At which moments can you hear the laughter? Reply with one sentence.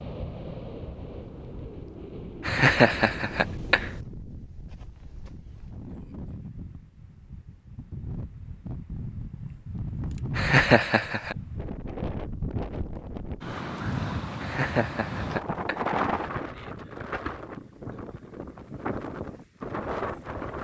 The laughter can be heard from 2.5 to 3.9 s, from 10.3 to 11.3 s and from 14.4 to 15.8 s.